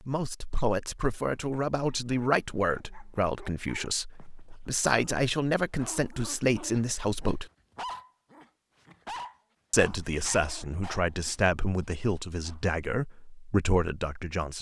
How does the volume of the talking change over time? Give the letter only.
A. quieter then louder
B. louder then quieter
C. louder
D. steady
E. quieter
D.